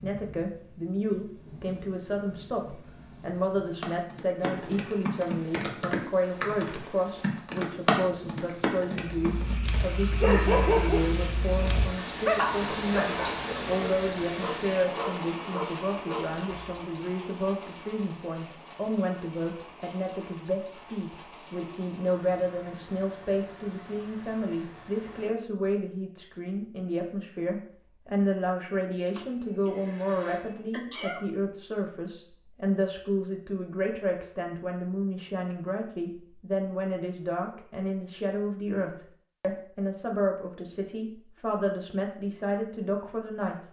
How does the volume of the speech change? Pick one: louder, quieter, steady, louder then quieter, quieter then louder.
steady.